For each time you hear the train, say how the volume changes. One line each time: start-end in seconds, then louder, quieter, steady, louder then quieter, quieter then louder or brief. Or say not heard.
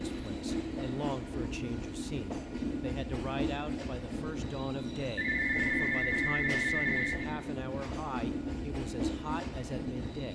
0.0-10.2 steady.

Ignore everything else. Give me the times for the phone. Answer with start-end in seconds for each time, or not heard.
5.2-7.1.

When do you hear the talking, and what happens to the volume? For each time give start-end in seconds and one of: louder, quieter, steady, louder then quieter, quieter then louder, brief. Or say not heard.
0.1-10.2 steady.